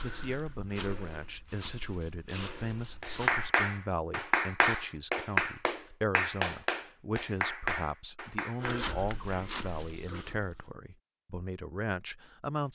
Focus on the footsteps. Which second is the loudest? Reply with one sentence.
The volume of the footsteps peaks at 9 seconds.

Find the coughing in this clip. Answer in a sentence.
You can't hear the coughing here.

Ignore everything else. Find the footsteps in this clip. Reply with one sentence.
The footsteps can be heard from 0.0 to 3.5 s and from 8.6 to 10.8 s.